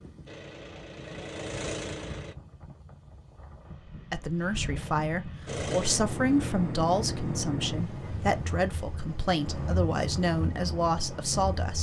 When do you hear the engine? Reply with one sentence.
You can hear the engine from 0.1 to 2.4 s and from 5.5 to 11.7 s.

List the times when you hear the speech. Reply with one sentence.
You can hear the speech from 4.1 to 11.7 s.